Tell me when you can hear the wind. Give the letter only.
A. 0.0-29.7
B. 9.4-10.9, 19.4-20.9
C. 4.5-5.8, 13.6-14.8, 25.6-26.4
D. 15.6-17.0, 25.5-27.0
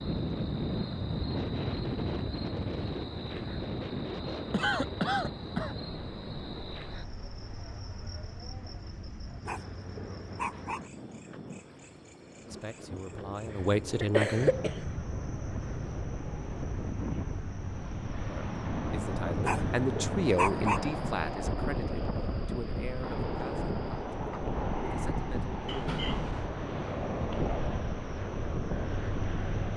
A.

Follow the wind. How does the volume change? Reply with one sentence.
The loudness of the wind goes down, then up.